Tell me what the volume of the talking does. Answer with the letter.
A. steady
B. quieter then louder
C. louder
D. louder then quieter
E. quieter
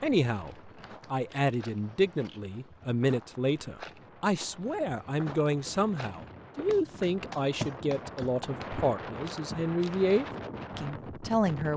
A.